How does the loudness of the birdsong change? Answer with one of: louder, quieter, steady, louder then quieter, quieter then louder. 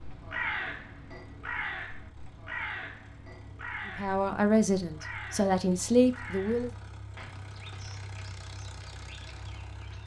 quieter.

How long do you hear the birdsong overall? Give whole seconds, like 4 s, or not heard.
10 s.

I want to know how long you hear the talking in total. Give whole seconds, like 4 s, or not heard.
3 s.